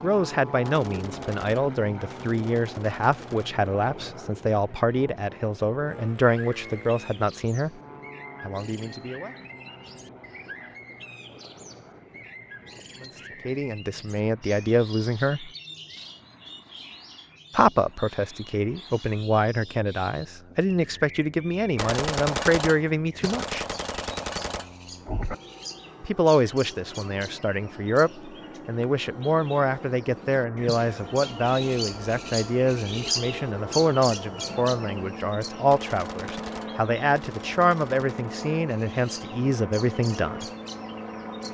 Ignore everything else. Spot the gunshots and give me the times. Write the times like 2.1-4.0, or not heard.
0.6-3.6, 21.8-25.4, 35.7-38.3.